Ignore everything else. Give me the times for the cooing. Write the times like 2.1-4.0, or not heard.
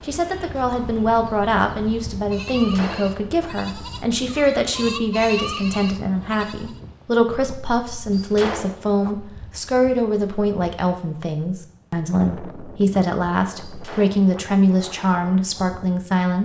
not heard.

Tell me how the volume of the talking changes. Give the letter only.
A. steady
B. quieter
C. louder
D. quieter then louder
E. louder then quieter
A.